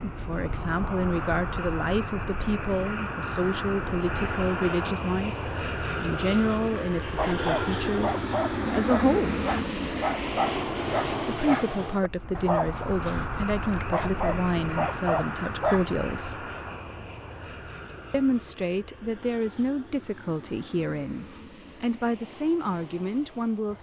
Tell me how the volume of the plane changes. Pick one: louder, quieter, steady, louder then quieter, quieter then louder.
quieter.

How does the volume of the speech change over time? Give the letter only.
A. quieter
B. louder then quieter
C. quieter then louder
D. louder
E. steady
E.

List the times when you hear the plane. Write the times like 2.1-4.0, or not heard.
0.0-23.7.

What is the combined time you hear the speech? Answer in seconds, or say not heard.
20 s.